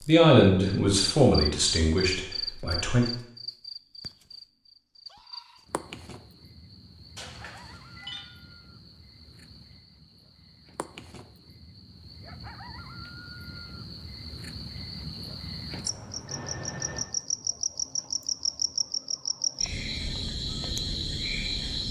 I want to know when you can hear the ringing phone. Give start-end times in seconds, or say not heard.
7.2-8.2, 15.8-17.1.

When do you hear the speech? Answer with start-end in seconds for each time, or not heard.
0.1-3.0.